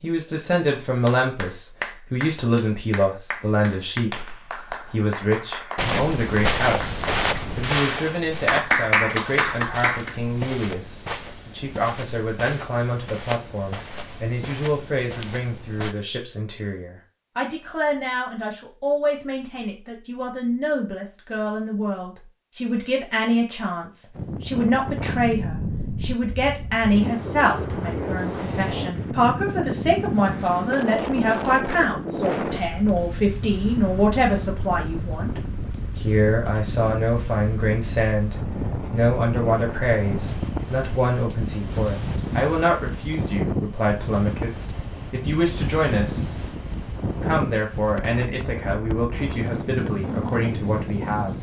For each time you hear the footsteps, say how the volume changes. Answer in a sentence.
You can hear the footsteps from 5.8 to 15.9 s, getting quieter.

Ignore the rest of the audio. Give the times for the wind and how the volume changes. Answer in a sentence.
You can hear the wind from 24.1 to 51.3 s, at a steady volume.